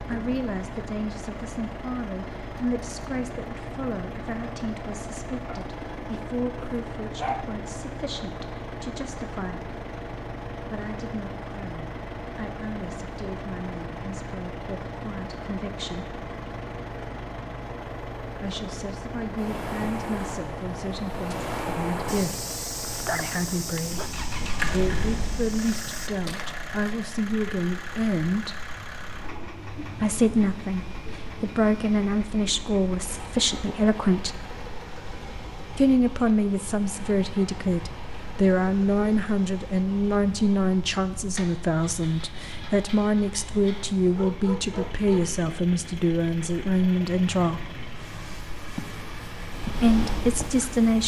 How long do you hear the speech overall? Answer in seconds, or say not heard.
43 s.